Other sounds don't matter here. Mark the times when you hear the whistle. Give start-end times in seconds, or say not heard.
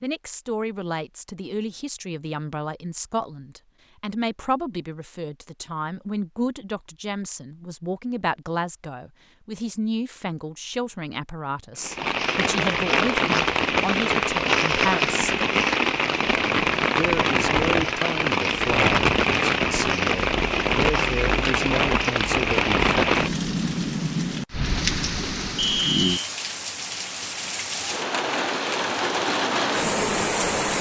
25.6-26.2.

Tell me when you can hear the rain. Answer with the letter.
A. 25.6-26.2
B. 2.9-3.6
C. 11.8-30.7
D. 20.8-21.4
C.